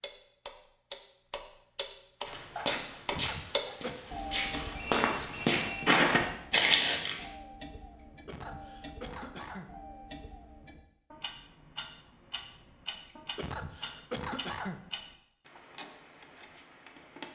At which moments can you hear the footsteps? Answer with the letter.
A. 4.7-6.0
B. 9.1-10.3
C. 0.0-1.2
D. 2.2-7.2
D.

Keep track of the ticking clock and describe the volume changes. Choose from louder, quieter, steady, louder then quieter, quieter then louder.
quieter.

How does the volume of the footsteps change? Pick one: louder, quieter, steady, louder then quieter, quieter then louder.
quieter then louder.